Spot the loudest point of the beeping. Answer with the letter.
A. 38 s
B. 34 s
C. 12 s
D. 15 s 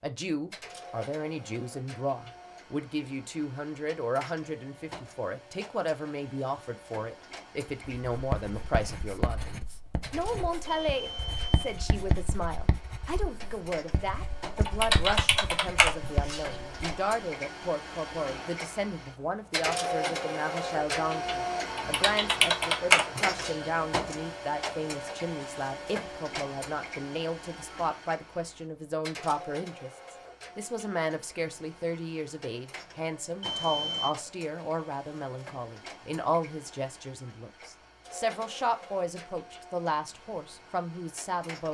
B.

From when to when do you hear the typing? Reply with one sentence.
The typing can be heard from 14.6 to 16.4 s and from 21.7 to 23.6 s.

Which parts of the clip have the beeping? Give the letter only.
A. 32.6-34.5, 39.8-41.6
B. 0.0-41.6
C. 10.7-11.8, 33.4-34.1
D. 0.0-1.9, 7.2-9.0
C.